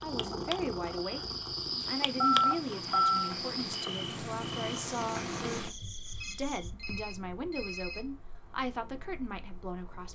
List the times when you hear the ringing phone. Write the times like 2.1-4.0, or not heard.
2.2-3.4, 6.2-8.0.